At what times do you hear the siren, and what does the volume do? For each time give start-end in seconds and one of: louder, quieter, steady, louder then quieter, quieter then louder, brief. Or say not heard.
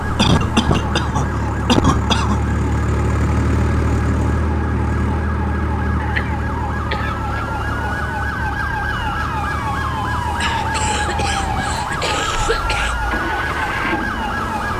0.0-14.7 louder.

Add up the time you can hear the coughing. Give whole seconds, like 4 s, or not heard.
6 s.